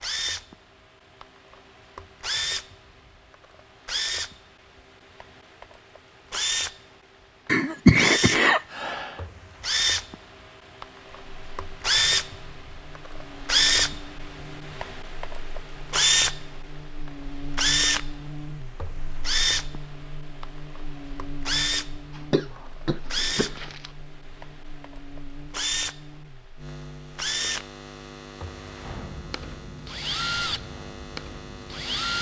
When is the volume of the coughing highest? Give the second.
8 s.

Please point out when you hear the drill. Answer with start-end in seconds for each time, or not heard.
0.0-6.8, 8.0-16.4, 17.6-26.1, 27.1-32.1.